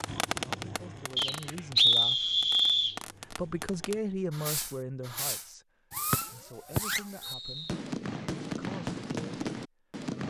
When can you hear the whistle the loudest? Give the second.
2 s.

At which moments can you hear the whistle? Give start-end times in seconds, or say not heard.
1.1-3.0, 6.1-7.7.